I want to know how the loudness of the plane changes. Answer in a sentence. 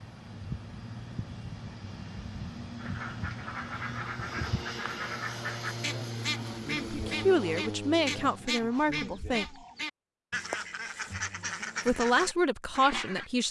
The loudness of the plane stays about the same.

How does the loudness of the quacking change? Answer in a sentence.
The volume of the quacking stays about the same.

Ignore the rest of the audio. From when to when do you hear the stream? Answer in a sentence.
The stream can't be heard in this clip.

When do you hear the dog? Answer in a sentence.
You can't hear the dog here.